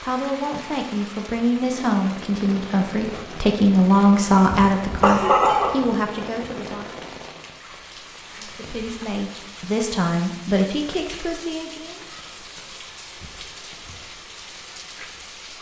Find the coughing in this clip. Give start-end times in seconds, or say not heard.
4.5-5.8.